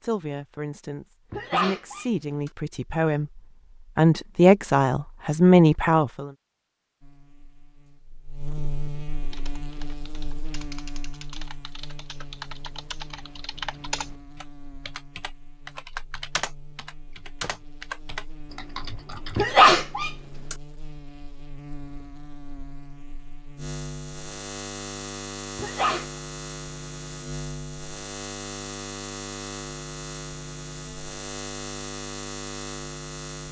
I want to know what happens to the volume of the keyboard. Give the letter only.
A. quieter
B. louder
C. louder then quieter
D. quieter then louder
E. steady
B.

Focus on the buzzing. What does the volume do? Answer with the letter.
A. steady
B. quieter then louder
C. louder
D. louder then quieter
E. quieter
B.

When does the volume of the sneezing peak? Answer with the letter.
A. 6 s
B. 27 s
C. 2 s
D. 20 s
D.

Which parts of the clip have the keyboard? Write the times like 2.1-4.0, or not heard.
9.3-19.4.